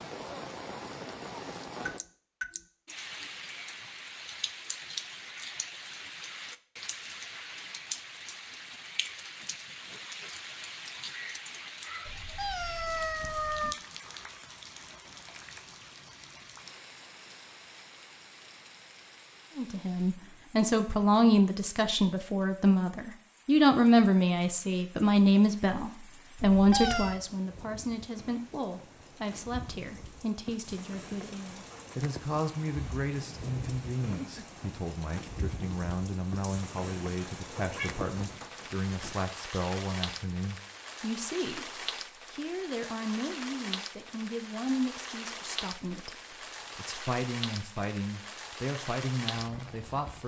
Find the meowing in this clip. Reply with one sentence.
The meowing can be heard from 12.1 to 13.8 s, from 26.5 to 27.2 s and from 37.4 to 39.1 s.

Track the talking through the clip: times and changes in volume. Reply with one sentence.
You can hear the talking from 19.6 to 50.2 s, getting quieter.